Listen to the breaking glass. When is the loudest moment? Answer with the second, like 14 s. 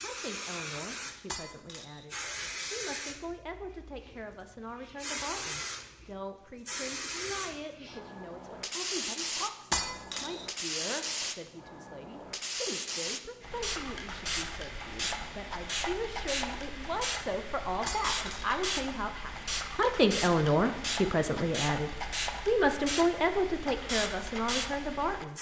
10 s.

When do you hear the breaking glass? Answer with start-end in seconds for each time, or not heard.
1.2-2.0, 9.7-10.4, 17.9-18.6.